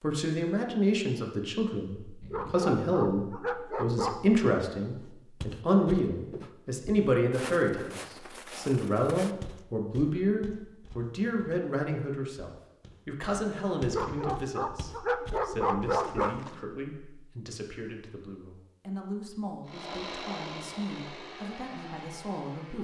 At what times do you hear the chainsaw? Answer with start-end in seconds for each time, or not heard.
19.6-22.7.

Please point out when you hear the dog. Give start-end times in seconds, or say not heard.
2.2-4.3, 13.8-16.4.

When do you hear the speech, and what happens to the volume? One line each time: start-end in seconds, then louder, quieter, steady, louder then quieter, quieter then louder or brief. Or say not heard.
0.0-22.7 quieter.